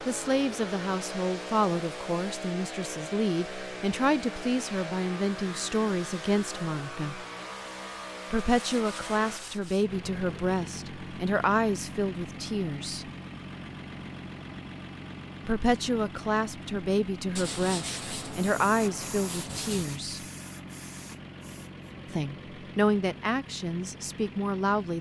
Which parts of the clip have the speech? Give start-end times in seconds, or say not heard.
0.0-7.2, 8.3-13.1, 15.4-20.2, 22.1-24.9.